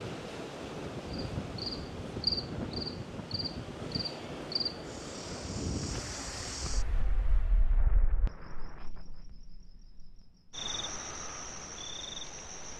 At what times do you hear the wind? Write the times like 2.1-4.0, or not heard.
0.0-9.2.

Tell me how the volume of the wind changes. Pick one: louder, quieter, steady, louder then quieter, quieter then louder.
quieter.